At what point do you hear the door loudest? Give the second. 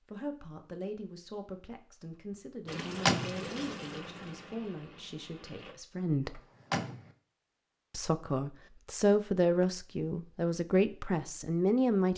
3 s.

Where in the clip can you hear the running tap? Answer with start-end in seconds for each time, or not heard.
2.6-5.8.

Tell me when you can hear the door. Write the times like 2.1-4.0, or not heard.
2.6-3.5, 6.3-7.1.